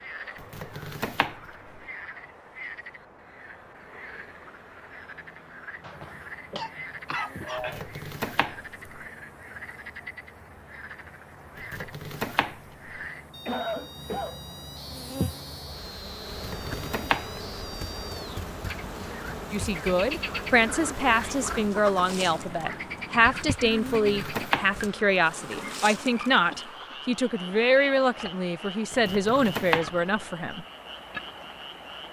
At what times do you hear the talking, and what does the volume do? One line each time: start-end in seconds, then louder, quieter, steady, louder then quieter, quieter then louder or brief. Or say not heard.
19.5-30.6 steady.